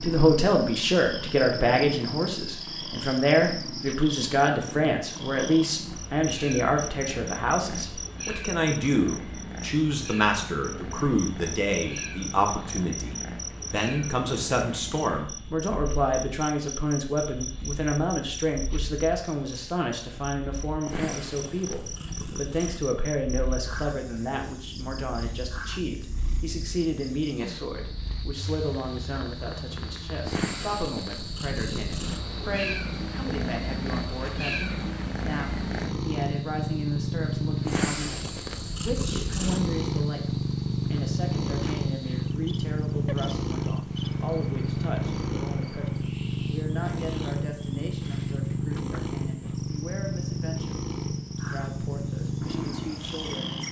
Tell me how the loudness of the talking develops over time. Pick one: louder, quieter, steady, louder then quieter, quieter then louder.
quieter.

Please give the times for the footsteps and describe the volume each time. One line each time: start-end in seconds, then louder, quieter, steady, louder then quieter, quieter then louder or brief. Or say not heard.
not heard.